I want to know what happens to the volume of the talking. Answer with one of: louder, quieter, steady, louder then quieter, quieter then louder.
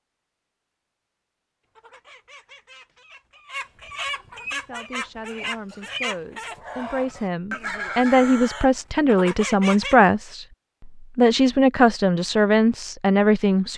louder.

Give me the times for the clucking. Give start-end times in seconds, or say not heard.
1.8-9.9.